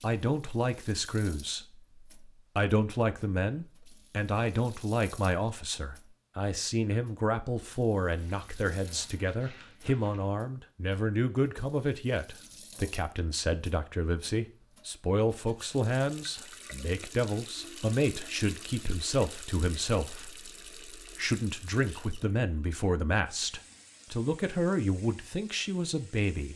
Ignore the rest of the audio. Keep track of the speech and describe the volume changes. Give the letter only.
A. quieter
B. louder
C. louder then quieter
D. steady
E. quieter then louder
D.